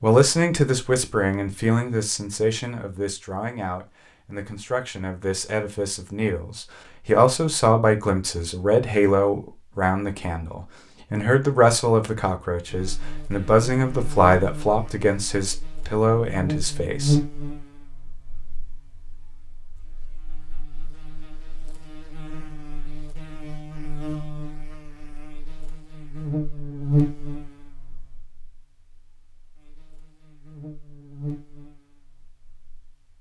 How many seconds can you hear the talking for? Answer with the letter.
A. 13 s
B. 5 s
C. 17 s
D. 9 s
C.